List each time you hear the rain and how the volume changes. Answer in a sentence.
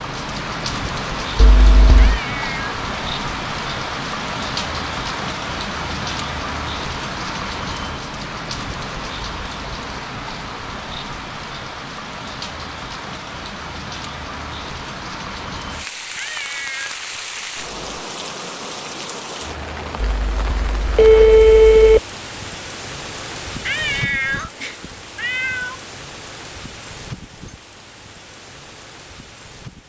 The rain can be heard from 0.0 to 29.8 s, getting quieter.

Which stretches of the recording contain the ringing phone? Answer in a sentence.
The ringing phone can be heard from 1.4 to 2.2 s and from 20.0 to 22.0 s.